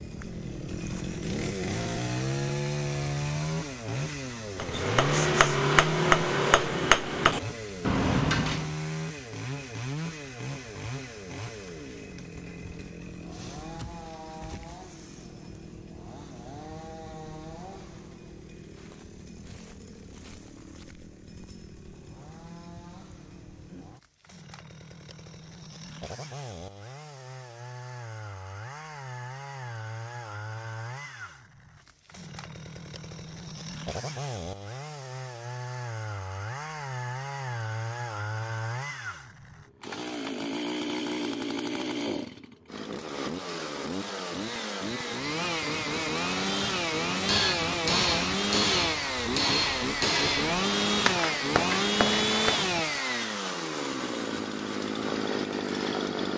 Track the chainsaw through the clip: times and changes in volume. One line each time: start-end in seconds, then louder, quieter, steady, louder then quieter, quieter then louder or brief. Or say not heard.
0.0-56.3 quieter then louder.